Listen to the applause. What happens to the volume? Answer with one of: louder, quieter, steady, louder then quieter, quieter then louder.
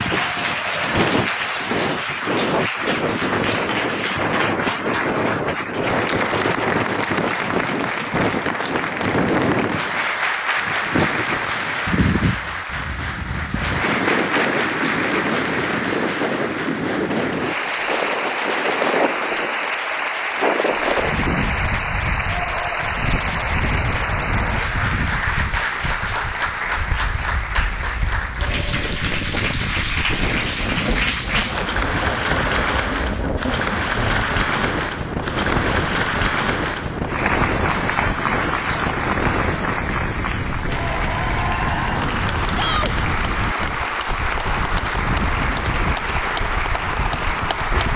steady.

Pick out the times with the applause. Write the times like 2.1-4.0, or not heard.
0.0-47.9.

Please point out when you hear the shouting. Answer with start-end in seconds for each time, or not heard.
42.5-43.0.